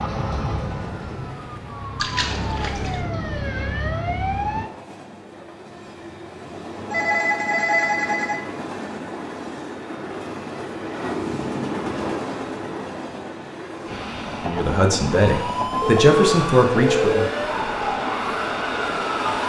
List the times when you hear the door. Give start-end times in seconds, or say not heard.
not heard.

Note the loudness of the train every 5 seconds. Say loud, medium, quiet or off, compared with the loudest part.
medium, medium, loud, loud.